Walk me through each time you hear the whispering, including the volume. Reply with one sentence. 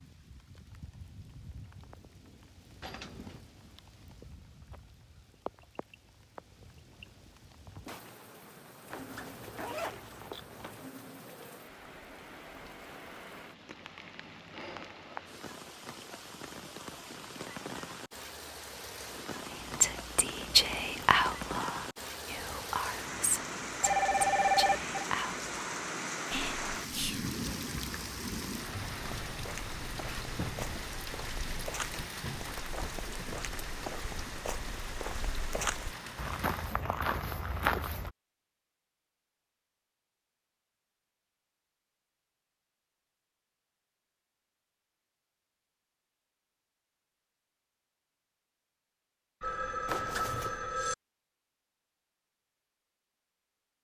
The whispering can be heard from 19.4 to 27.3 s, getting quieter.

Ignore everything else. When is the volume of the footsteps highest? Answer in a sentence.
The loudest moment of the footsteps is at 38 seconds.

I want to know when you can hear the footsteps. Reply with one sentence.
The footsteps can be heard from 28.9 to 38.1 s.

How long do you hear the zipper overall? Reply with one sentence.
You can hear the zipper for 3 seconds altogether.